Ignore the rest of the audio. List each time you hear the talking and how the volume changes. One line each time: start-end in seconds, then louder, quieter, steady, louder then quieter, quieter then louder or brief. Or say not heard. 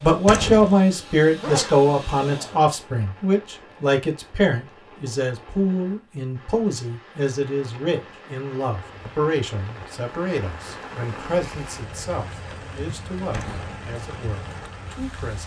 0.0-15.4 quieter.